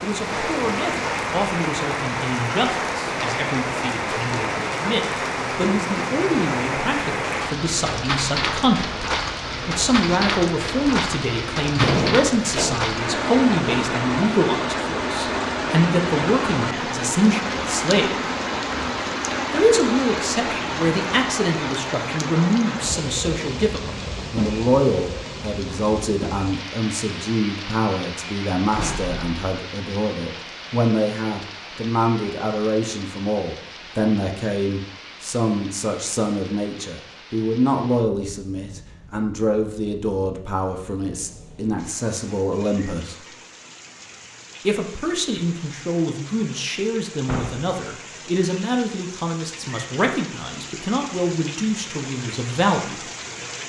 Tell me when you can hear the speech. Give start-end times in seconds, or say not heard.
0.0-8.9, 9.7-18.1, 19.5-43.2, 44.6-53.0.